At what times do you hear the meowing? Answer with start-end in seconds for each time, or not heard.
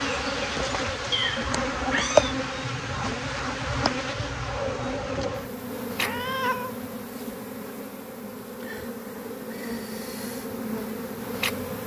1.1-2.4, 6.0-6.7.